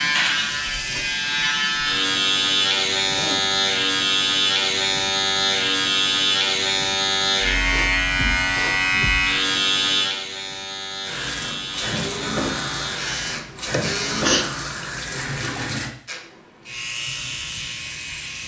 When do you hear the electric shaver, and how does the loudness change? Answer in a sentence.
You can hear the electric shaver from 0.0 to 14.2 s, getting quieter; and briefly from 16.1 to 18.4 s.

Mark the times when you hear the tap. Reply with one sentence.
You can hear the tap from 0.2 to 1.6 s and from 11.0 to 15.9 s.